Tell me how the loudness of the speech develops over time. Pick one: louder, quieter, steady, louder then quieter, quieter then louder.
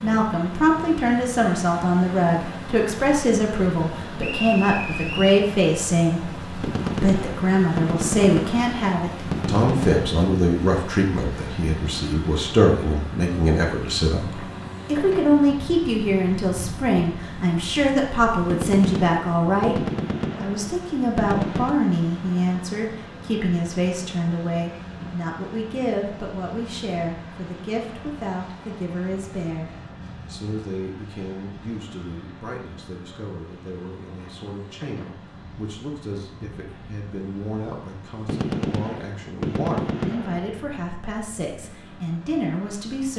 quieter.